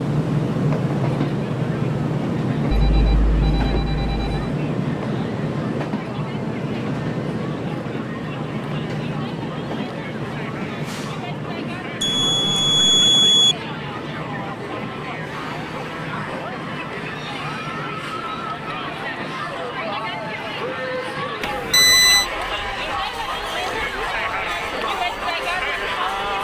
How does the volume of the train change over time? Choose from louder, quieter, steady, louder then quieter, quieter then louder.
quieter.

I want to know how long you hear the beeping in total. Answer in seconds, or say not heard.
4 s.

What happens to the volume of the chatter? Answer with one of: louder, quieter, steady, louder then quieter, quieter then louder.
louder.